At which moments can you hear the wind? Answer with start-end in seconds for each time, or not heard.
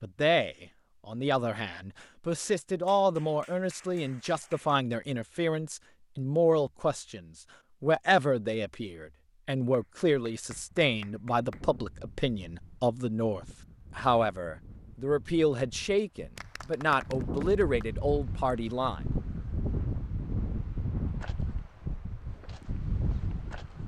10.4-23.8.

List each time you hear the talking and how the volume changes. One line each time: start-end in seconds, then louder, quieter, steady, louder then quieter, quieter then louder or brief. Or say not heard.
0.0-19.0 steady.